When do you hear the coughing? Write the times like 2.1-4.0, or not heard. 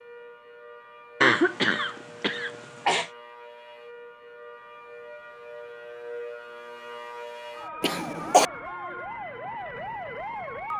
1.2-3.1, 7.8-8.4.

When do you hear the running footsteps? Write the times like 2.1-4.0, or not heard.
not heard.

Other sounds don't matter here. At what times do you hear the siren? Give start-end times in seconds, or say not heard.
0.0-10.7.